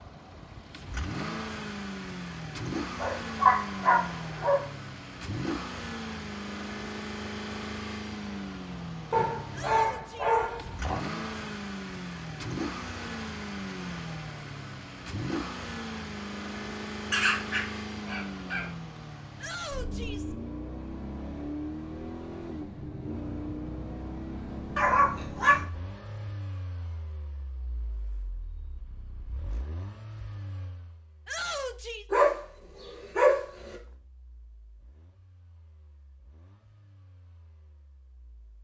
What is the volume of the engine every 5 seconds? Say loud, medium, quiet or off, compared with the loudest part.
loud, loud, loud, loud, loud, medium, quiet, quiet.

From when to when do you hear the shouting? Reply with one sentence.
The shouting can be heard from 9.5 to 10.4 s, from 19.4 to 20.4 s and from 31.2 to 32.0 s.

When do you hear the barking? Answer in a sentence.
You can hear the barking from 3.0 to 4.7 s, from 9.1 to 11.0 s, from 17.1 to 18.6 s, from 24.8 to 25.6 s and from 32.1 to 33.8 s.